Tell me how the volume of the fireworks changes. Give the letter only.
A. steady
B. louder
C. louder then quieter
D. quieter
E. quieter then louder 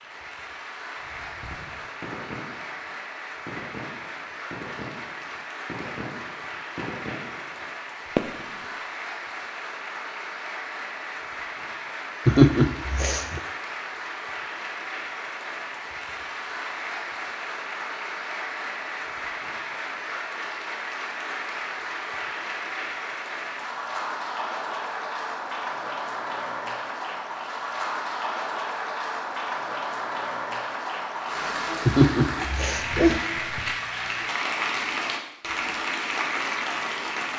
B.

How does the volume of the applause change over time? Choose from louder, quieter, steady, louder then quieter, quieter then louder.
louder.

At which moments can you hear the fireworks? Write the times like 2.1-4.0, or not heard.
1.0-8.7.